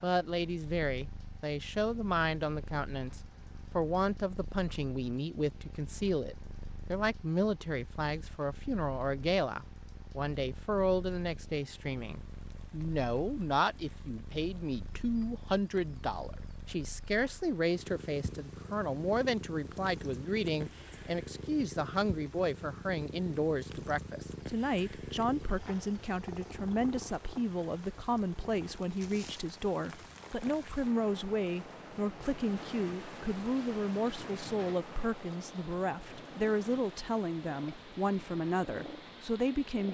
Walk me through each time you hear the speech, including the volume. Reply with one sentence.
The speech can be heard from 0.0 to 39.8 s, at a steady volume.